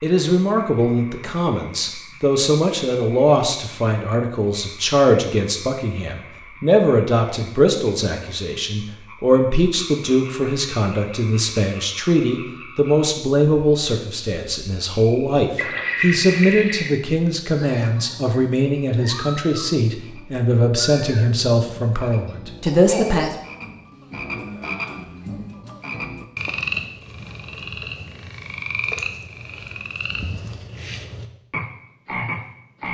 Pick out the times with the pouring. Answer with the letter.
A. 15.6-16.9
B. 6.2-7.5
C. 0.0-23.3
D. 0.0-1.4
A.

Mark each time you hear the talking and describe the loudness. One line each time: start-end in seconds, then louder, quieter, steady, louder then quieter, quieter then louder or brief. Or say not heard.
0.0-23.3 steady.